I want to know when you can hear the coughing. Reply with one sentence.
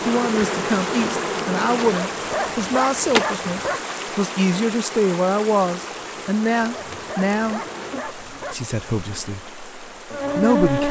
You can't hear the coughing here.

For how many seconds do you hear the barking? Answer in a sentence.
The barking can be heard for 4 seconds in total.